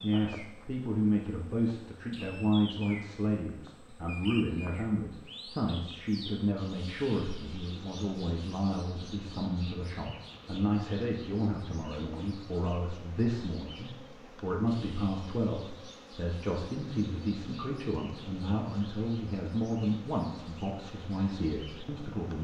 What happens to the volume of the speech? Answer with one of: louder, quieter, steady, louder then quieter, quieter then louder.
steady.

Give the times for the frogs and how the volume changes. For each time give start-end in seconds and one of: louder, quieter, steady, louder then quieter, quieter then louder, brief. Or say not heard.
not heard.